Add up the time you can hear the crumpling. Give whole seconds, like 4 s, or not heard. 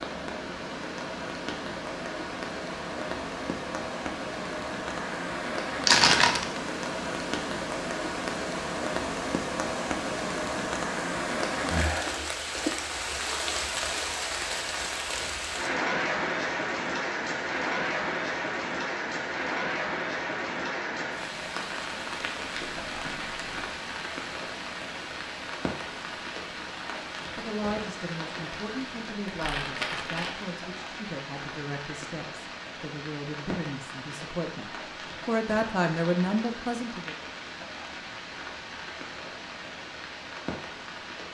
3 s.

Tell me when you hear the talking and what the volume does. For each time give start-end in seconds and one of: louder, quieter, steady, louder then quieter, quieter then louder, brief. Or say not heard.
27.4-34.6 steady
35.2-37.1 brief.